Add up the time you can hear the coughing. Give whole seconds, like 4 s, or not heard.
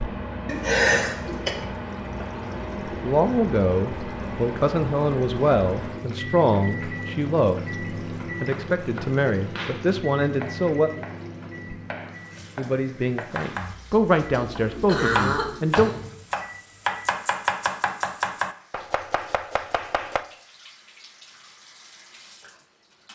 3 s.